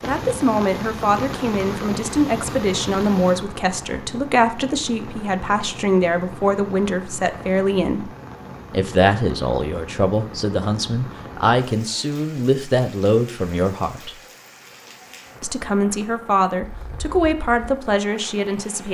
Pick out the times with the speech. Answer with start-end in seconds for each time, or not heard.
0.0-8.1, 8.7-14.2, 15.4-18.8.